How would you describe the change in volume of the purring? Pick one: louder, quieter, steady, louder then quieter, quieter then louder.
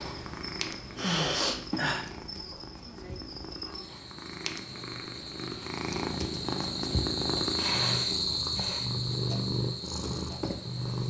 louder.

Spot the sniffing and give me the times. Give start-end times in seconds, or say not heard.
0.9-2.0, 7.5-8.9.